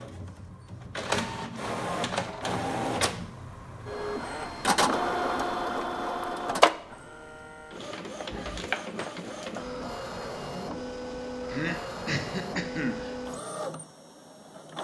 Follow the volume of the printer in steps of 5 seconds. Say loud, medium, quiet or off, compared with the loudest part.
loud, loud, medium.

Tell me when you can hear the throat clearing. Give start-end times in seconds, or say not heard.
11.5-13.2.